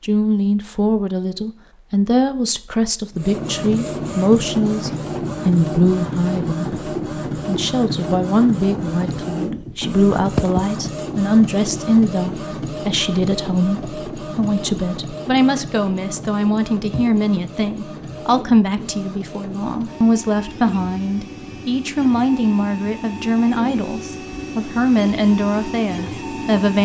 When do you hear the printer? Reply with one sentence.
You can hear the printer from 3.1 to 26.8 s.